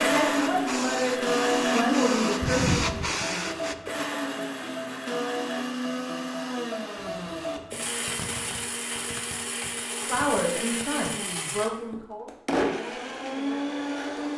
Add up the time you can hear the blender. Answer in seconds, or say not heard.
14 s.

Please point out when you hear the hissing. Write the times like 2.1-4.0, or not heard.
0.2-3.8.